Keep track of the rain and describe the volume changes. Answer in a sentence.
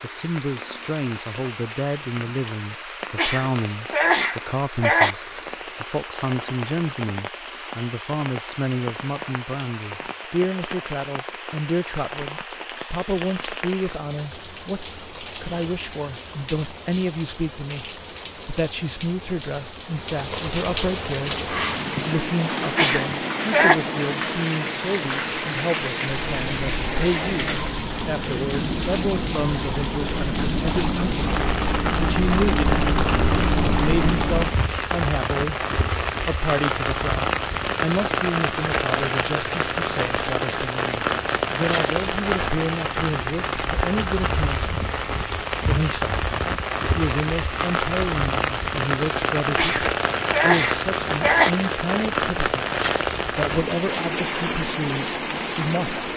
The volume of the rain goes up.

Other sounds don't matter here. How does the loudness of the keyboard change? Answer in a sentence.
The volume of the keyboard goes up.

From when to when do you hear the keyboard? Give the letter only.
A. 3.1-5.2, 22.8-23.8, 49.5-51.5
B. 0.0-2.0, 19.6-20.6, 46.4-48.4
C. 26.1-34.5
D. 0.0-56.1
C.